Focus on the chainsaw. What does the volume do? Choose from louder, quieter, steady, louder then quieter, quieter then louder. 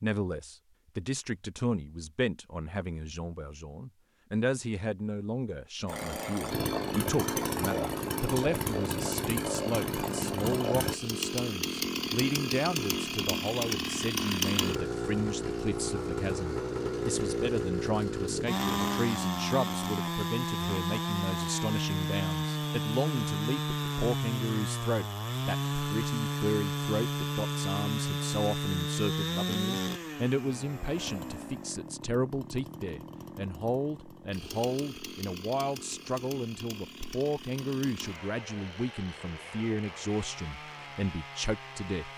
quieter.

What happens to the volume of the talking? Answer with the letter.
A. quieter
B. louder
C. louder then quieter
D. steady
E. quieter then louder
D.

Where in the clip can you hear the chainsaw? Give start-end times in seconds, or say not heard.
5.8-42.1.